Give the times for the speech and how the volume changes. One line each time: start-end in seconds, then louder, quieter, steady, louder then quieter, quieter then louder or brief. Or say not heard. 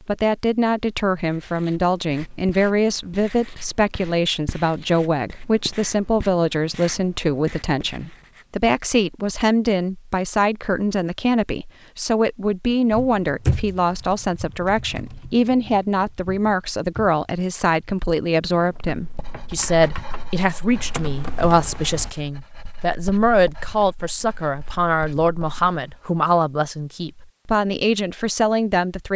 0.1-29.1 steady.